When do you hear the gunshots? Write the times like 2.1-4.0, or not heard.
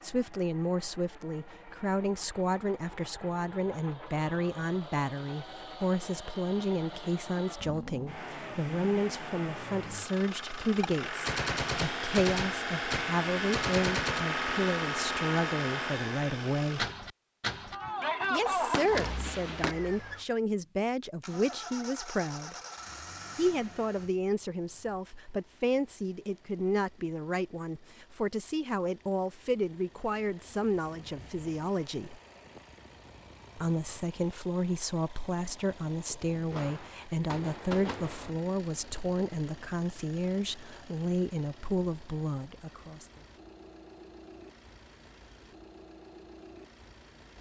10.8-14.3, 17.7-19.8, 36.5-38.3.